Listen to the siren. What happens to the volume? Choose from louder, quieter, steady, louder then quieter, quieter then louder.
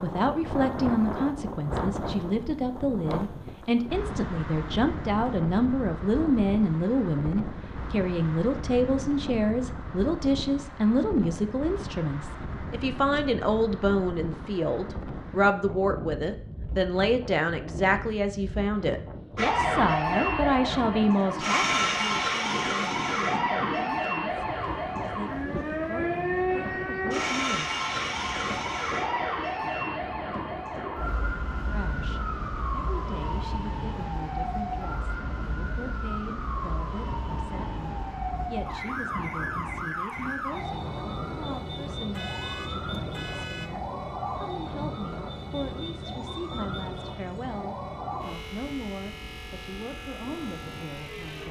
quieter.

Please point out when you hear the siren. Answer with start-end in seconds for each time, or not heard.
19.4-51.4.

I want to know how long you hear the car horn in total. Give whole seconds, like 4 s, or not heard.
2 s.